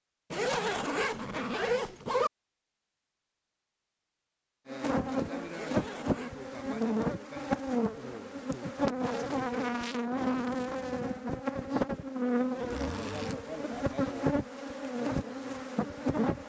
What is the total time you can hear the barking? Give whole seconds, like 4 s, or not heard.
not heard.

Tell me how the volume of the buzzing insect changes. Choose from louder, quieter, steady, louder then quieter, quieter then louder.
steady.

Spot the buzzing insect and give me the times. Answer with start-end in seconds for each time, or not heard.
4.7-16.4.